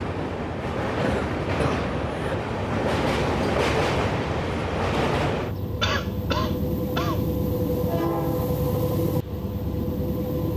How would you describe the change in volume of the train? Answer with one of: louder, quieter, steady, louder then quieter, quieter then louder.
steady.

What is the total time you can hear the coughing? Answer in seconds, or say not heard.
3 s.